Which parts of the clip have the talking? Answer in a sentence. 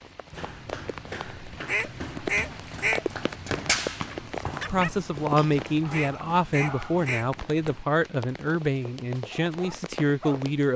You can hear the talking from 4.7 to 10.7 s.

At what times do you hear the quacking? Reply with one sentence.
You can hear the quacking from 1.6 to 3.0 s and from 5.9 to 7.7 s.